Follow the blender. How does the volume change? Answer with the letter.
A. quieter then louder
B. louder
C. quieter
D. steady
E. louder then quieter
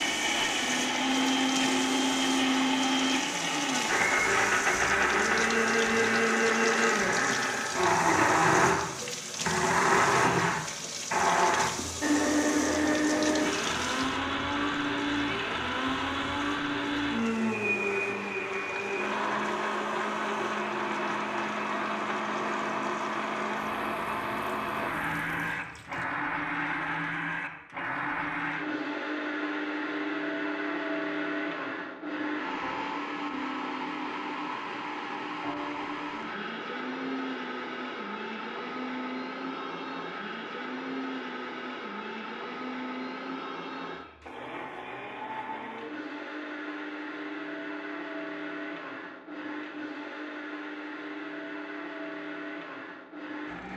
C.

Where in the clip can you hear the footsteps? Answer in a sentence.
You can't hear the footsteps here.